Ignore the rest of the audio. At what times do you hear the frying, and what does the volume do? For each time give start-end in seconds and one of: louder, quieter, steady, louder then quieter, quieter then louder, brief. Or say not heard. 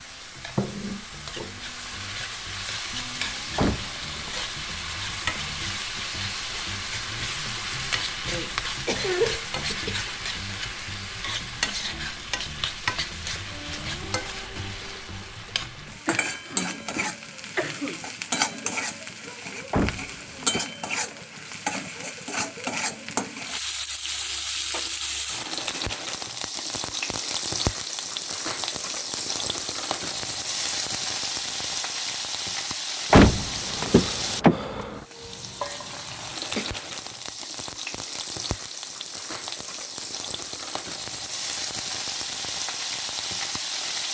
0.0-44.0 steady.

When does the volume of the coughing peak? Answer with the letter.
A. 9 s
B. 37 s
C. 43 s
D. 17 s
A.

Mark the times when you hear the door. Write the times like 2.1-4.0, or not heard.
3.5-4.3, 19.7-20.6, 33.1-35.0.